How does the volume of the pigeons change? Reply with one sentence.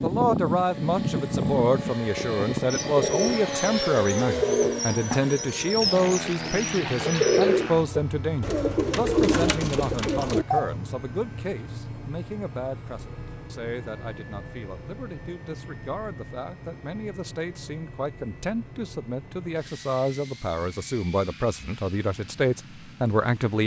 The volume of the pigeons stays about the same.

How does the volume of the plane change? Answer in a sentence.
The volume of the plane goes down.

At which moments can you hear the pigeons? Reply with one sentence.
You can hear the pigeons from 2.7 to 10.8 s.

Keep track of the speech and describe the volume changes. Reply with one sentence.
The loudness of the speech goes down, then up.